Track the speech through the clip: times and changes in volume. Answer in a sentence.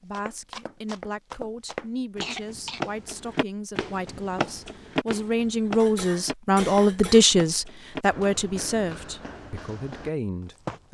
You can hear the speech from 0.0 to 10.8 s, getting louder then quieter.